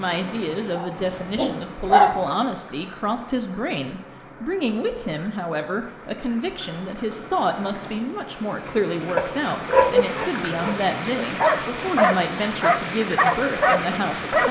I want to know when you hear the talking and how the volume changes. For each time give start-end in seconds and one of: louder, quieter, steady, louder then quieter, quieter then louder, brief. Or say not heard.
0.0-14.4 steady.